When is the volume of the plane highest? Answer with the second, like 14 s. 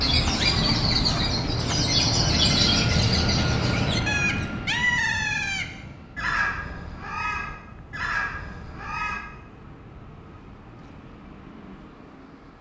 3 s.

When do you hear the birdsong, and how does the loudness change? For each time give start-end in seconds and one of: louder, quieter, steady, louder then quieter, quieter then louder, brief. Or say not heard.
0.0-9.2 quieter.